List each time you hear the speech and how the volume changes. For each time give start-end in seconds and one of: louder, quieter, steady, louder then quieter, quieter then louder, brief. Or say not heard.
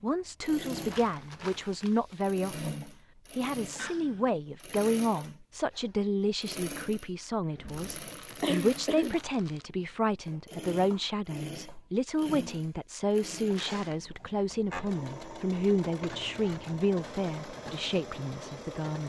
0.0-19.0 steady.